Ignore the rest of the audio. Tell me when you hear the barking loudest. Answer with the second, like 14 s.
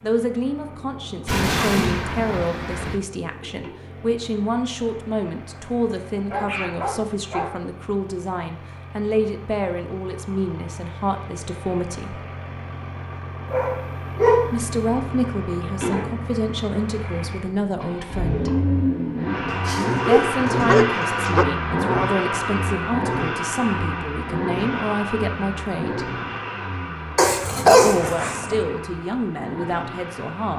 28 s.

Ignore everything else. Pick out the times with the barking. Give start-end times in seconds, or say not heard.
1.2-3.0, 6.3-7.6, 13.5-14.6, 19.4-21.4, 27.1-28.6.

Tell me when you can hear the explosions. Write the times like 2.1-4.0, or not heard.
1.2-2.0.